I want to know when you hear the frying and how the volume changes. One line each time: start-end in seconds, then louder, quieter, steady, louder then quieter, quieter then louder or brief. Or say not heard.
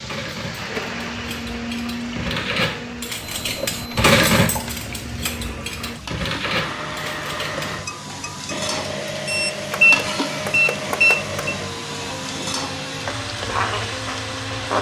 0.0-14.7 louder.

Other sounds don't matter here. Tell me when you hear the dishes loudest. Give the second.
4 s.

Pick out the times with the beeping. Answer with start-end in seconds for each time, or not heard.
3.2-4.7, 9.2-11.6.